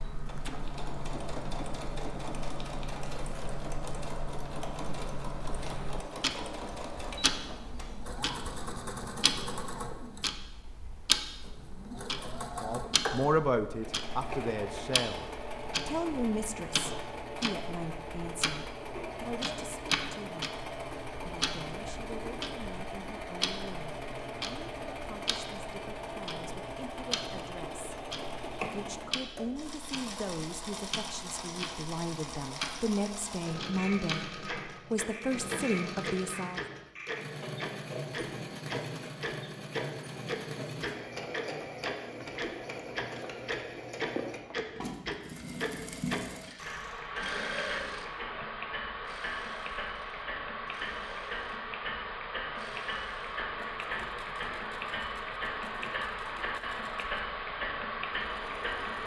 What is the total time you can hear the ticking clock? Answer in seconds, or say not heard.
59 s.